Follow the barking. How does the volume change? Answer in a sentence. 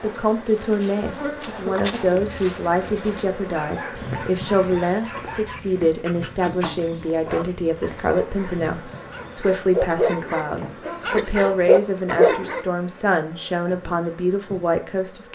The loudness of the barking goes up.